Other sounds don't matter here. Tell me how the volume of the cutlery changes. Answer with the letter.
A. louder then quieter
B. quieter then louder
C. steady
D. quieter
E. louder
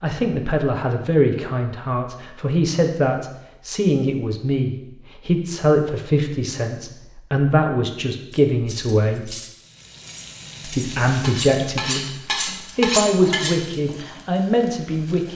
B.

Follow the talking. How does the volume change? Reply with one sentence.
The volume of the talking stays about the same.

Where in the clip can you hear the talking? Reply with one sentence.
You can hear the talking from 0.0 to 9.3 s and from 10.6 to 15.3 s.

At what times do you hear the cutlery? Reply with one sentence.
The cutlery can be heard from 8.3 to 13.8 s.